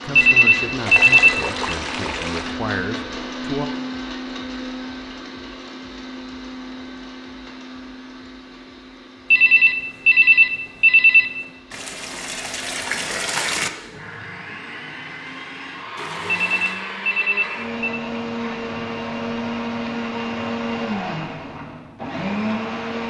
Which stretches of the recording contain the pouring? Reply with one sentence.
The pouring can be heard from 0.8 to 2.5 s, from 11.7 to 13.7 s and from 15.9 to 16.9 s.